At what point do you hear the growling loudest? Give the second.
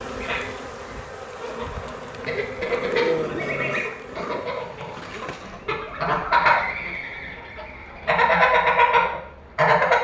3 s.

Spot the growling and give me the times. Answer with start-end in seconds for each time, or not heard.
2.6-4.5.